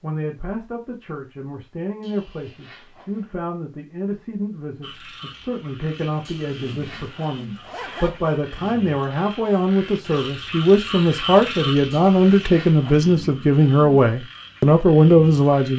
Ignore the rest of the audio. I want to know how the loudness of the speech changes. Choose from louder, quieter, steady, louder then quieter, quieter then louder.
louder.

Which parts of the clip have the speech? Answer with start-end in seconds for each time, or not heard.
0.0-15.7.